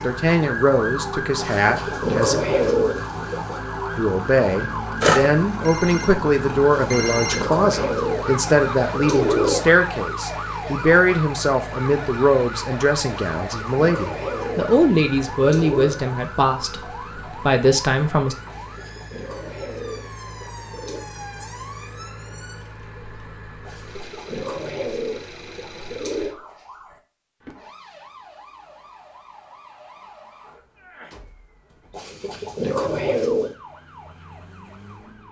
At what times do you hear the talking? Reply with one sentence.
You can hear the talking from 0.0 to 2.4 s and from 4.0 to 18.4 s.